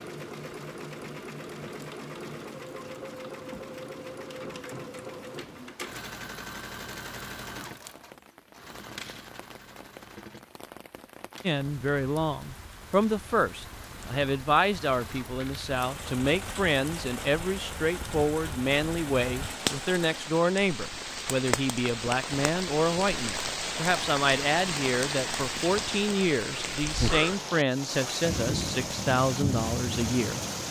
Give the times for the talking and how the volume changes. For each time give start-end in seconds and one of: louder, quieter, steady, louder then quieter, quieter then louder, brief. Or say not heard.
11.4-30.4 steady.